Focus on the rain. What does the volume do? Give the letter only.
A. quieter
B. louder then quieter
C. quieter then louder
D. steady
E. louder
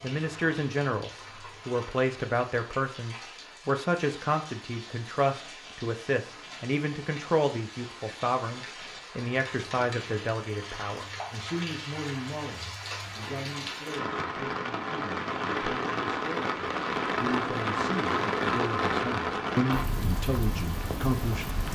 E.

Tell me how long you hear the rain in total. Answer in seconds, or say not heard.
22 s.